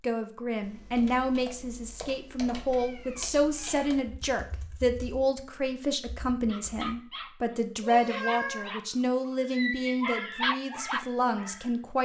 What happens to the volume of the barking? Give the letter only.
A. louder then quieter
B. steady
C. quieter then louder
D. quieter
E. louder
E.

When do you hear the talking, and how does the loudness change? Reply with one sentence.
The talking can be heard from 0.0 to 12.0 s, at a steady volume.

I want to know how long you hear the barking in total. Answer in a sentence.
The barking can be heard for 5 seconds in total.